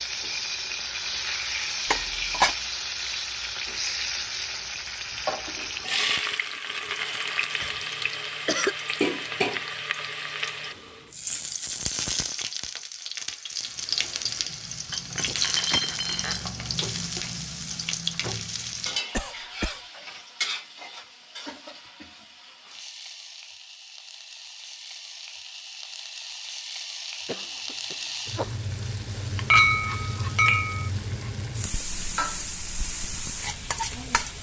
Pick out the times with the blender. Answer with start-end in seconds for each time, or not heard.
not heard.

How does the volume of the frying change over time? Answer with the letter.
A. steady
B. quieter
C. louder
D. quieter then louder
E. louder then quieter
D.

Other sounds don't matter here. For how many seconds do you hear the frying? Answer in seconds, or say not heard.
34 s.